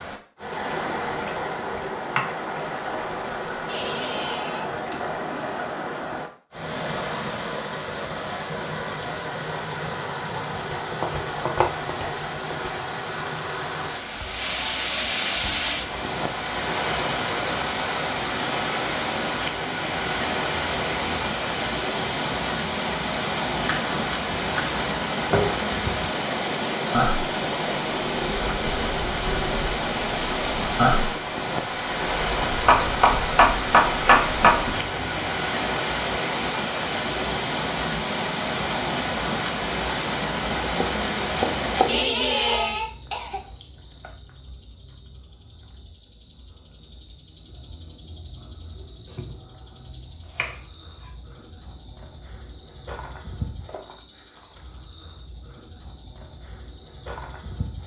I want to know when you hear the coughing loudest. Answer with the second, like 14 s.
42 s.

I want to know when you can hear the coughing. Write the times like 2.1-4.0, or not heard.
3.6-5.1, 41.9-43.4.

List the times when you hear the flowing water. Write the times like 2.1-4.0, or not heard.
0.0-42.0.